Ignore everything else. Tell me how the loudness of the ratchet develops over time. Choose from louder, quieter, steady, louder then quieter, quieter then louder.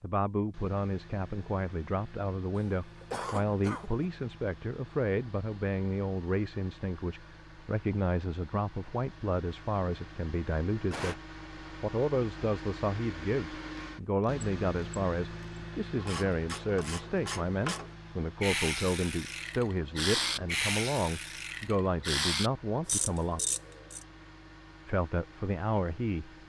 louder.